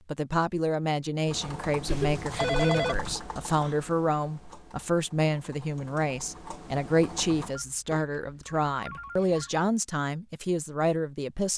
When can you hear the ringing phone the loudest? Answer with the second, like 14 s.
3 s.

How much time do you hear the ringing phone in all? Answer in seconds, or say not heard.
3 s.